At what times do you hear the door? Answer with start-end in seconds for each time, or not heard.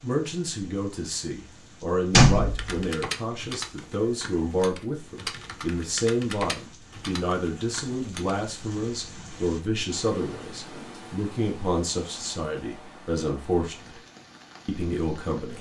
2.1-2.9.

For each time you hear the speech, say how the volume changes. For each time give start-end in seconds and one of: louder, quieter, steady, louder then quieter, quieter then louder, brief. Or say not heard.
0.0-14.0 steady
14.7-15.5 brief.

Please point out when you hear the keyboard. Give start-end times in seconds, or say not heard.
2.5-8.4.